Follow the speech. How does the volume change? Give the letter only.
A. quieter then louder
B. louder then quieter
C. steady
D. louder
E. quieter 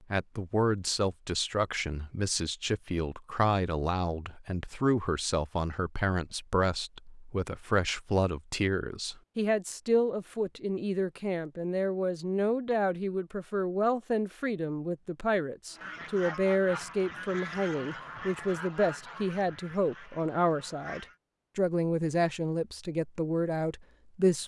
C.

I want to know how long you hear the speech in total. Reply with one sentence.
The speech can be heard for 24 seconds in total.